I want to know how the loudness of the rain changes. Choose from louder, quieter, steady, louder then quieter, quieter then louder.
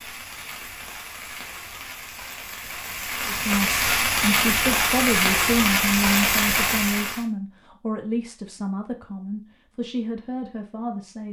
louder.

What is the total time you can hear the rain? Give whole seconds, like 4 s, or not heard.
7 s.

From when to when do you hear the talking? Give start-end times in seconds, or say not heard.
3.2-11.2.